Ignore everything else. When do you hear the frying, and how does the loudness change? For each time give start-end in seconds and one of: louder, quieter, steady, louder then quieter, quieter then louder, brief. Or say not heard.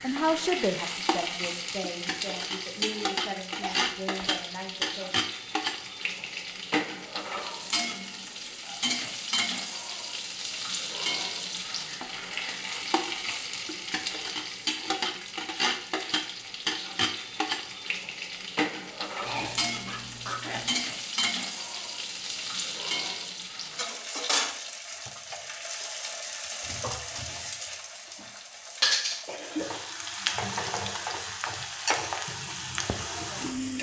0.0-33.7 steady.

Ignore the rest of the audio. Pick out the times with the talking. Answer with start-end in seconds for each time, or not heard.
0.0-5.1.